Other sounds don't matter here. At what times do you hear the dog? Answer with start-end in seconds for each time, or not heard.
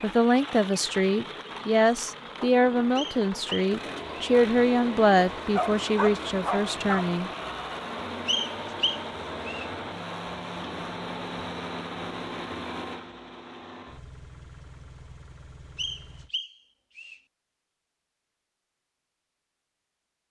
5.4-7.2.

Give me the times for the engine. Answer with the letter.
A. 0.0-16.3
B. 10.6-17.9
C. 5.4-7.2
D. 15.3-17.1
A.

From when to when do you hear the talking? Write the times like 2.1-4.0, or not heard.
0.0-7.3.